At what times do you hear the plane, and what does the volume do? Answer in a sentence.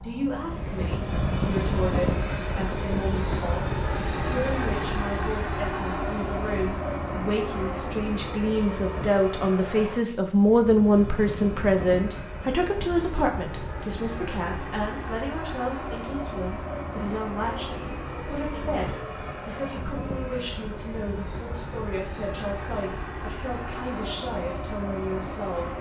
You can hear the plane from 0.0 to 25.7 s, getting quieter.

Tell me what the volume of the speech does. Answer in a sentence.
The loudness of the speech goes up, then down.